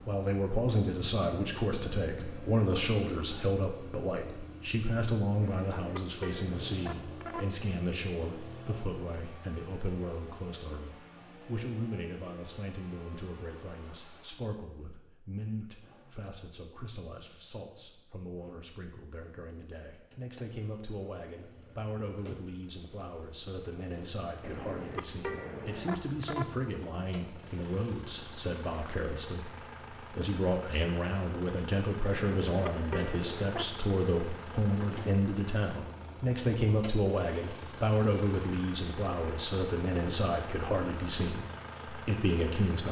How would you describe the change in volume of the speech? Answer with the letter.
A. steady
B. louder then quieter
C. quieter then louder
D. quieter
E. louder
C.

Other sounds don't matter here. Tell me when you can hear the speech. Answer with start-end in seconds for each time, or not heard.
0.1-42.8.